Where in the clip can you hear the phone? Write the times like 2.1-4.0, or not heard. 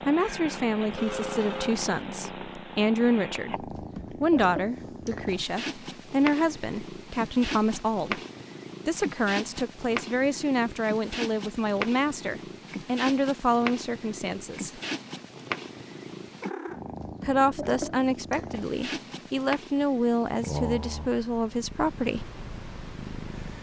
0.9-2.0.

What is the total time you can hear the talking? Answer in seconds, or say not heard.
19 s.